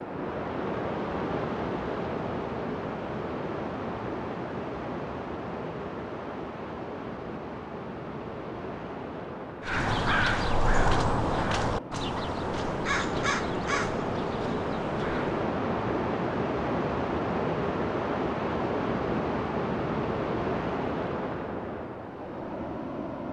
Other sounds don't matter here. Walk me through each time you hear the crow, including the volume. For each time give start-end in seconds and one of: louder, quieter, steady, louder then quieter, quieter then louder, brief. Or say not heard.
9.7-15.4 quieter.